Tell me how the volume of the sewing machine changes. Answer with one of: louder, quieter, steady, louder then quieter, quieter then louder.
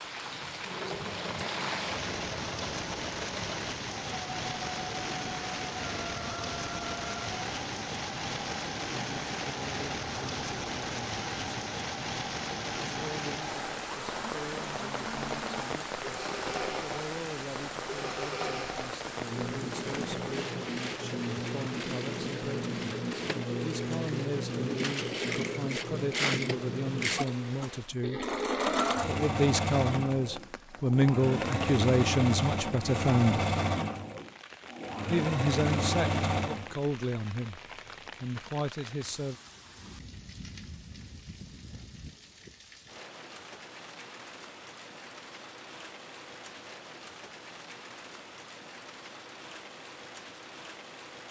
louder.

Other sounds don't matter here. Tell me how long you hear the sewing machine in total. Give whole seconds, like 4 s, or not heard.
37 s.